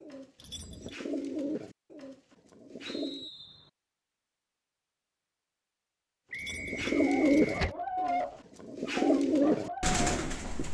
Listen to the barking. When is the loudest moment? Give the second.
8 s.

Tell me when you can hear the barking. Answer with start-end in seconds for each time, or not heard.
6.7-10.6.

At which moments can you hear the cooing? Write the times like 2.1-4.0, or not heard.
0.0-3.3, 6.5-10.6.